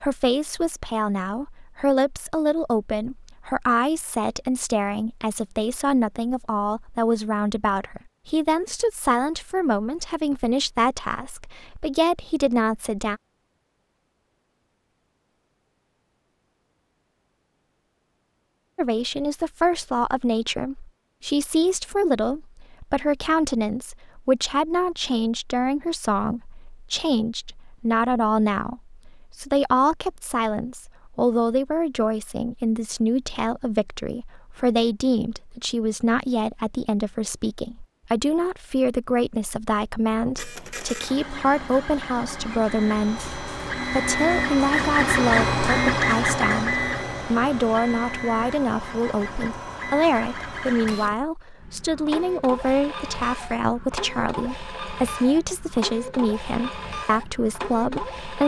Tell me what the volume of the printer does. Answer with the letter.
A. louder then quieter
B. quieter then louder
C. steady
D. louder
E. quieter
A.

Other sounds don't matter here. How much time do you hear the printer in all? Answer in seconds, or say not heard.
18 s.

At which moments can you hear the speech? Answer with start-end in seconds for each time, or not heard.
0.0-13.2, 18.8-58.4.